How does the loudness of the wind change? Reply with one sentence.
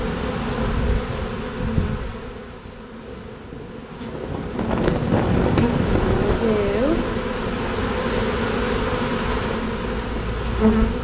The loudness of the wind goes up, then down.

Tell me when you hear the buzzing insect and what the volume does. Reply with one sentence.
You can hear the buzzing insect from 0.0 to 10.9 s, getting quieter then louder.